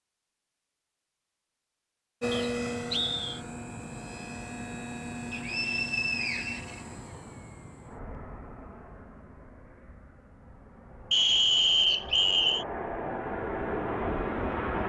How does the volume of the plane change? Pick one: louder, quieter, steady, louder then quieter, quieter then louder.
quieter then louder.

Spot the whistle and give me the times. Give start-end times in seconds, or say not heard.
2.3-3.4, 5.3-6.8, 11.1-12.7.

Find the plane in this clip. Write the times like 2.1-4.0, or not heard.
2.2-14.8.